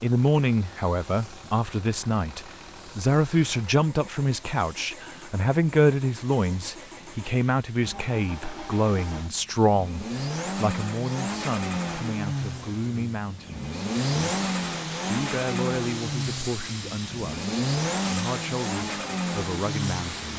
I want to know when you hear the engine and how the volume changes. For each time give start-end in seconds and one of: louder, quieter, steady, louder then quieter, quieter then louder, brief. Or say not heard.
0.0-20.3 louder.